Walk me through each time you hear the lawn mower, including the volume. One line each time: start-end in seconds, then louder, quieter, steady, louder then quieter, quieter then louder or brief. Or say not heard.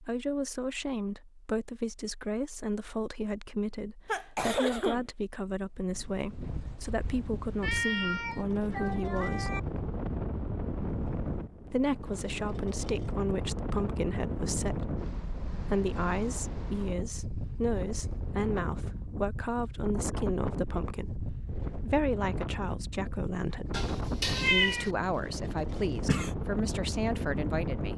not heard.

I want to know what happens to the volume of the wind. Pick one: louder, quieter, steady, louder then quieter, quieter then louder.
steady.